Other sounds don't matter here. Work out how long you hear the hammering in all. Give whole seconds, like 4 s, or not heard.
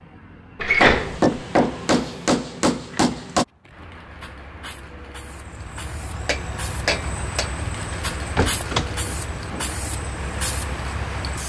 4 s.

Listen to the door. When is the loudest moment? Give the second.
1 s.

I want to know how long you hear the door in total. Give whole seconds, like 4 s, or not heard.
2 s.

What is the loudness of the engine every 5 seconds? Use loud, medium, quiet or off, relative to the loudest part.
off, loud, loud.